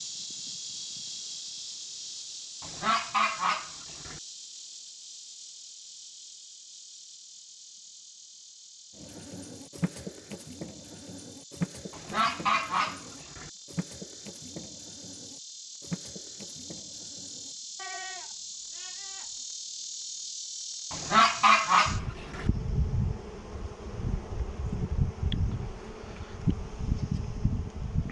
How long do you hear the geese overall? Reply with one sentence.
The geese can be heard for 5 seconds in total.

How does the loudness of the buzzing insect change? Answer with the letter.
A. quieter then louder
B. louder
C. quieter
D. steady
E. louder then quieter
A.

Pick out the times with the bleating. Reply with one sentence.
The bleating can be heard from 8.9 to 19.4 s.